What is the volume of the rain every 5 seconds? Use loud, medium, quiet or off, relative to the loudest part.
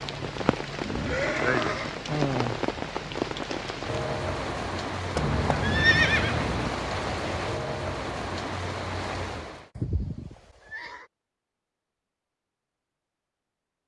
loud, loud, off.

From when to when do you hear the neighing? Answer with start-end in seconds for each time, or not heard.
0.8-1.9, 5.2-6.7, 9.8-11.1.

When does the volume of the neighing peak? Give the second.
6 s.